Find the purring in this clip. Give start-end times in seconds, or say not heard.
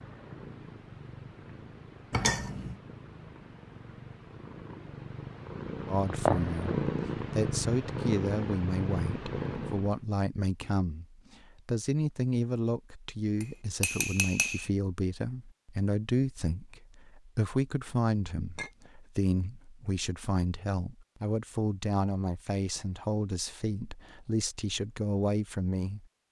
0.0-10.0.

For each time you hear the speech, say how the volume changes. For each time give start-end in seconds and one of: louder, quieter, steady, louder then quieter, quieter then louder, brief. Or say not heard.
5.8-26.2 steady.